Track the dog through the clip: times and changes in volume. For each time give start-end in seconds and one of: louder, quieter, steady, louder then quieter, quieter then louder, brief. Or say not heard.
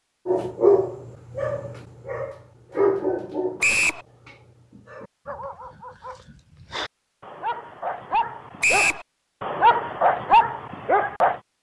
0.2-11.4 quieter then louder.